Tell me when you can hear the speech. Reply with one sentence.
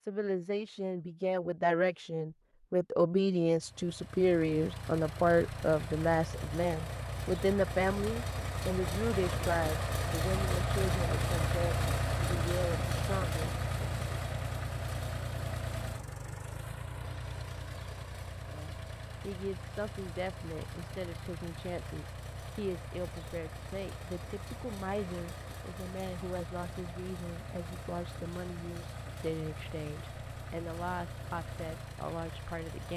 You can hear the speech from 0.0 to 14.0 s and from 18.4 to 32.9 s.